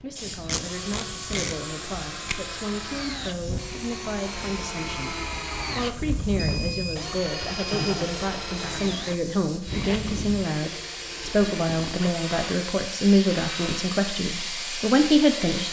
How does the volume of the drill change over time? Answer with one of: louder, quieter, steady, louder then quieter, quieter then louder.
louder then quieter.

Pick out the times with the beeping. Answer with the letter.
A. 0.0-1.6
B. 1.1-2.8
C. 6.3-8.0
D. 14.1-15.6
C.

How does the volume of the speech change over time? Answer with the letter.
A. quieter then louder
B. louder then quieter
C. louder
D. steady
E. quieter
C.